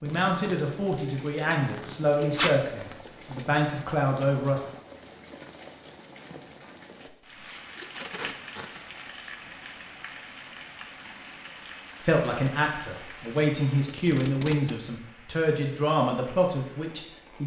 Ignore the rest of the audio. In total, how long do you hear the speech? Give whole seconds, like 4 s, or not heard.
10 s.